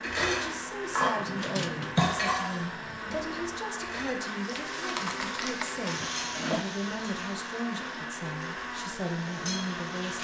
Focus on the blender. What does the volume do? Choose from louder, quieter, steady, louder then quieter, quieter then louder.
steady.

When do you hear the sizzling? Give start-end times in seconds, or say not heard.
4.3-10.1.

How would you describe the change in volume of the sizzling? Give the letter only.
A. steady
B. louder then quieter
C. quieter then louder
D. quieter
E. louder
C.